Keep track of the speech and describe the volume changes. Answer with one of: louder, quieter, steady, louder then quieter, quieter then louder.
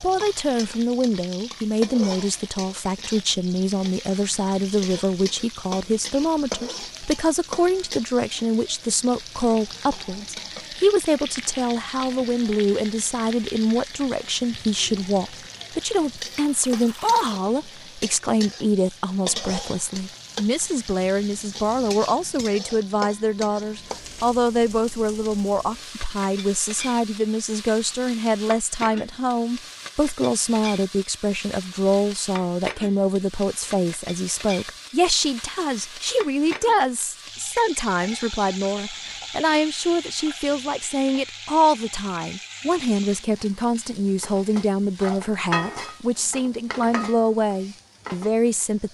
steady.